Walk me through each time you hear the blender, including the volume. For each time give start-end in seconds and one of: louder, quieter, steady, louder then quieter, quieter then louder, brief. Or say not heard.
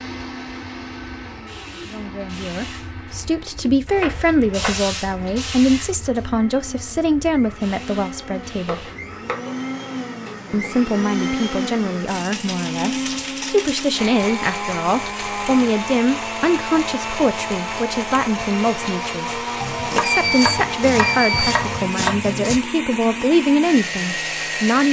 0.0-24.8 louder.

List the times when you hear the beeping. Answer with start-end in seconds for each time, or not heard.
20.0-21.6.